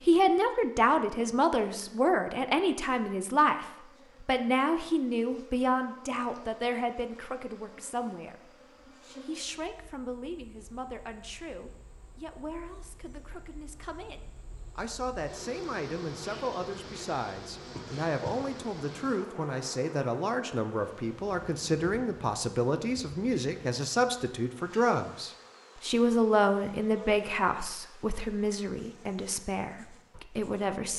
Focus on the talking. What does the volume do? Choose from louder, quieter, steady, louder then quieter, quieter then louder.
quieter then louder.